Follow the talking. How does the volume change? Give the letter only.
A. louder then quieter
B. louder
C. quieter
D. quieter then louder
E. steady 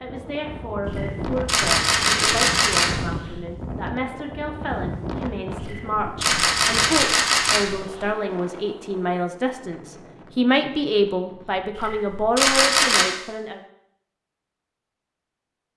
B.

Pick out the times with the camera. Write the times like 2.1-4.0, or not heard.
0.8-3.4, 5.6-8.1, 11.8-13.1.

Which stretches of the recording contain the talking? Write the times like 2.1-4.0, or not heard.
0.0-13.6.